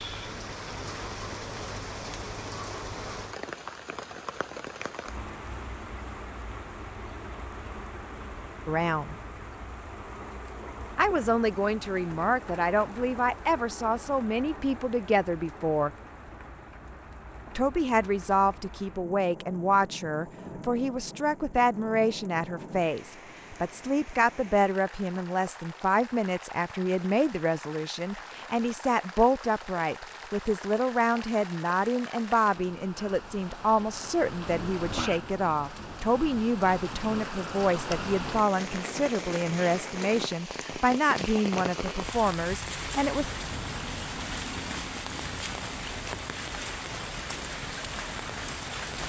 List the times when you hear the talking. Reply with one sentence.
The talking can be heard from 8.7 to 9.2 s, from 10.9 to 15.9 s and from 17.6 to 43.3 s.